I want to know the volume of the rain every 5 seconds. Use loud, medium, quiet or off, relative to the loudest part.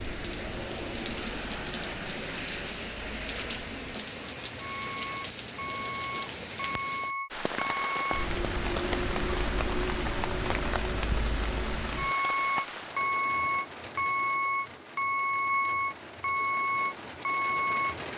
loud, loud, loud, medium.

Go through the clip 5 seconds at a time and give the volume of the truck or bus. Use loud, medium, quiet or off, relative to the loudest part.
quiet, medium, loud, loud.